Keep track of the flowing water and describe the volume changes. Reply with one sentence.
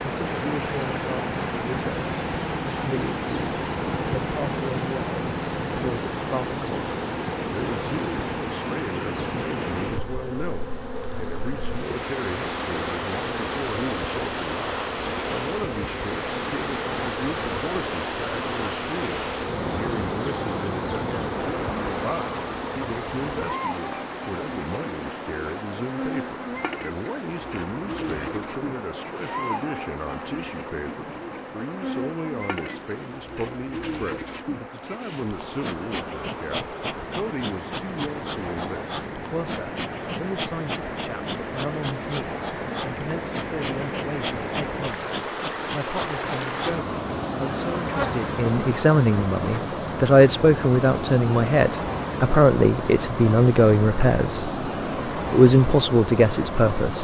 The volume of the flowing water goes down, then up.